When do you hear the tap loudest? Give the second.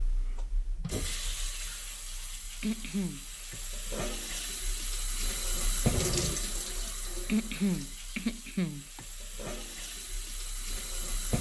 6 s.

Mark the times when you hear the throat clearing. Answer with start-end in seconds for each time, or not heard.
2.6-3.2, 7.2-9.0.